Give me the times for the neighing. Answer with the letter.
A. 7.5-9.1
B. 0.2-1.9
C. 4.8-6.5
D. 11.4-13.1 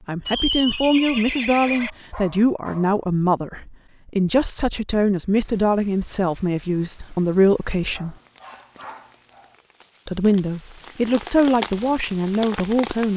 B.